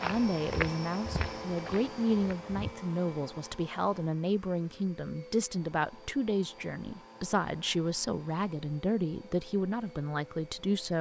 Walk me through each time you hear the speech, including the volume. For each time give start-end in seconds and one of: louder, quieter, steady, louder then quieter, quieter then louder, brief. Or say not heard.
0.0-10.9 steady.